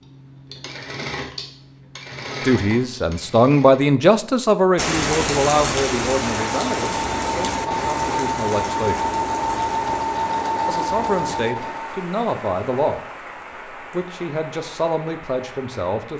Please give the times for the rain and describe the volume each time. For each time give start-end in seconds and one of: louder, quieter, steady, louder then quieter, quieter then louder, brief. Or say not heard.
4.8-16.1 quieter.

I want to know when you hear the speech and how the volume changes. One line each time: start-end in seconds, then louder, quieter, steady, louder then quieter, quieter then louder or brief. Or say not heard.
2.5-9.0 quieter
10.7-13.0 brief
13.9-16.1 brief.